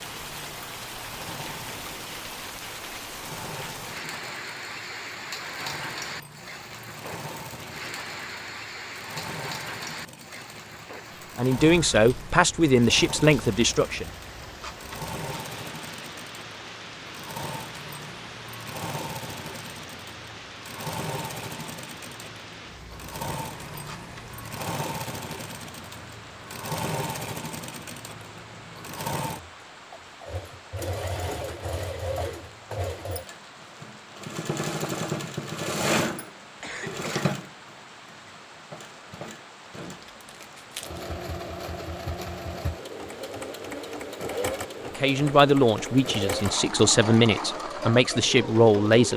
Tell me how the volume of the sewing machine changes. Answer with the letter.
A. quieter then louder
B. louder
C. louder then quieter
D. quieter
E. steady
B.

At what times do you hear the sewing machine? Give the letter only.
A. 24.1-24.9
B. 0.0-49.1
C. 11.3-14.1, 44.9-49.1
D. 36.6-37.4
B.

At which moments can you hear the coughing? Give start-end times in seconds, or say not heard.
36.6-37.4.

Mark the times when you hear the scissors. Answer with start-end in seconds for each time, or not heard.
not heard.